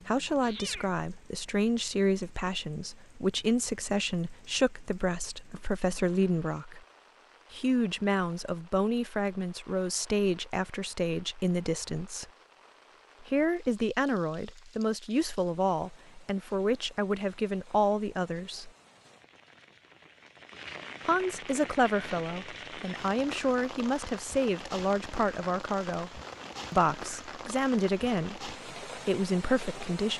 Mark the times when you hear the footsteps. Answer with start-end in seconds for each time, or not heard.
not heard.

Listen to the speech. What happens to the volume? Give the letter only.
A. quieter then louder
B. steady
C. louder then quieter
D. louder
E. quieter
B.